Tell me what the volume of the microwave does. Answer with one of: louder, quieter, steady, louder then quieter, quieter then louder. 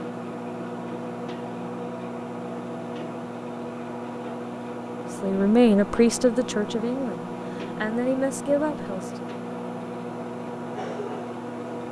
steady.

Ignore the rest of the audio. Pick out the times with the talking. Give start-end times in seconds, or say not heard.
5.2-9.1.